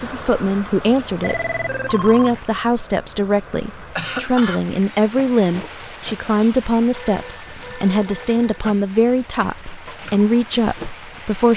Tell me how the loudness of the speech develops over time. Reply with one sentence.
The loudness of the speech stays about the same.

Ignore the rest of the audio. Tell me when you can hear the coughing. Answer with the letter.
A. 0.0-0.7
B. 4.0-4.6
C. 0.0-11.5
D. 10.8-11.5
B.